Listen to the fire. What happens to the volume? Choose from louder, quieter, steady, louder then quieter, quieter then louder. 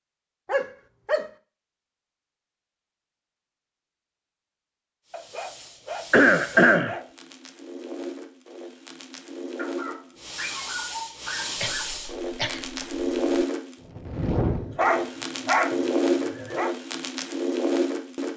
louder.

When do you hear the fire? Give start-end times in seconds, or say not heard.
5.0-18.3.